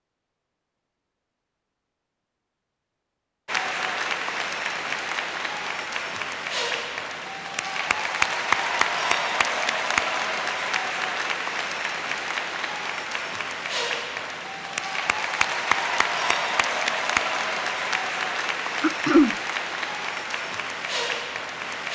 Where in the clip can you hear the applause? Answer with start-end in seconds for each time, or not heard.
3.5-21.8.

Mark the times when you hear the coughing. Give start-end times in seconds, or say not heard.
18.8-19.4.